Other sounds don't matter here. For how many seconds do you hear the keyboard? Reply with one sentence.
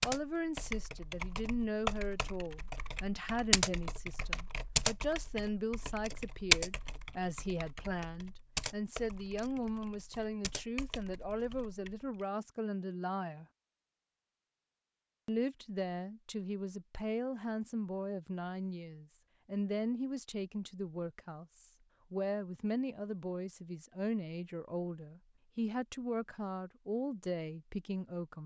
The keyboard can be heard for 12 seconds in total.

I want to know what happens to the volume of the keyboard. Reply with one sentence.
The volume of the keyboard goes up, then down.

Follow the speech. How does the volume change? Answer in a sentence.
The loudness of the speech stays about the same.